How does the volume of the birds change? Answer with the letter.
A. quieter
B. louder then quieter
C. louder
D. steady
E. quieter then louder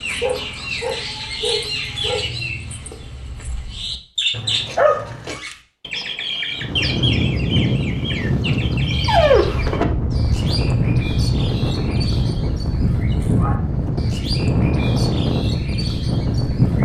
D.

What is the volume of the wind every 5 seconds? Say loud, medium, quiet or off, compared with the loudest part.
off, loud, loud, loud.